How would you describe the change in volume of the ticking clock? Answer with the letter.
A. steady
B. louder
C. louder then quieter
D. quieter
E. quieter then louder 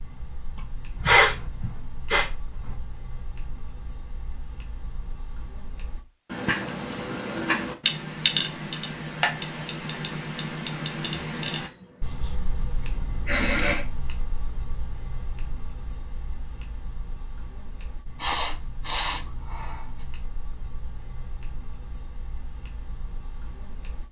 C.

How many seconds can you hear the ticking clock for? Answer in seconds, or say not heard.
24 s.